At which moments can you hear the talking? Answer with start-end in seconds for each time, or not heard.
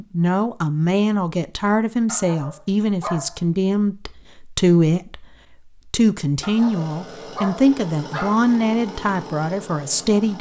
0.0-5.2, 5.9-10.3.